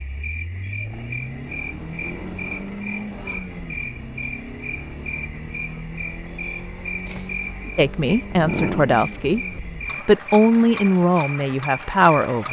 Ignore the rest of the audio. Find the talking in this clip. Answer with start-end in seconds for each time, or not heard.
7.8-12.4.